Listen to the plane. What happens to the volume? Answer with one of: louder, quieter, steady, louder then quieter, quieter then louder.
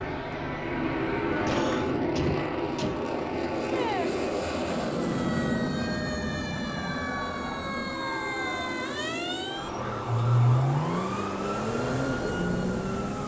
quieter.